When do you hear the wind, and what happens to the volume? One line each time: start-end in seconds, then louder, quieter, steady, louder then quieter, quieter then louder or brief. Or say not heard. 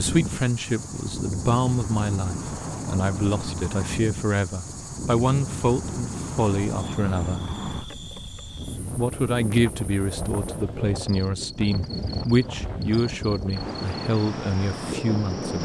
0.0-15.6 steady.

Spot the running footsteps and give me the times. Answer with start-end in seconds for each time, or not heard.
not heard.